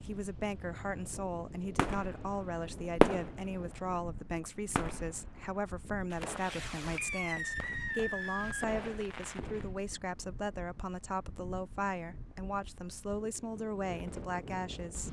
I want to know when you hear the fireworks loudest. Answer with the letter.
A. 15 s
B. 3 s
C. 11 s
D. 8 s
B.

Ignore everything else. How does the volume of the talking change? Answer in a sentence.
The volume of the talking stays about the same.